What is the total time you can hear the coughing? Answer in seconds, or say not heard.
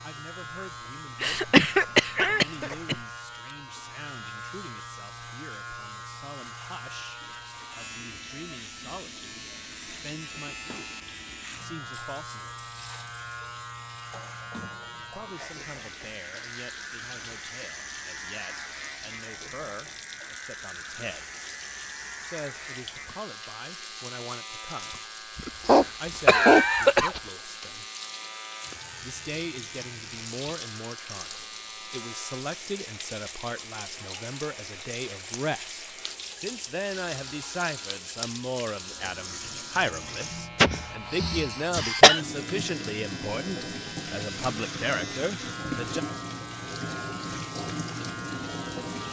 5 s.